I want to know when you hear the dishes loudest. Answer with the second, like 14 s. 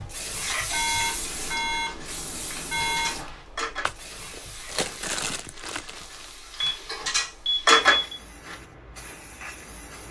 8 s.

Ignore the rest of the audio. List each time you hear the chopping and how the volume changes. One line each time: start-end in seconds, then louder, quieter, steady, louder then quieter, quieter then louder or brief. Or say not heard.
not heard.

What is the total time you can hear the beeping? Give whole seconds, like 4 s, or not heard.
4 s.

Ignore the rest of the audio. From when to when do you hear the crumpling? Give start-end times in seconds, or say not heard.
3.8-6.3.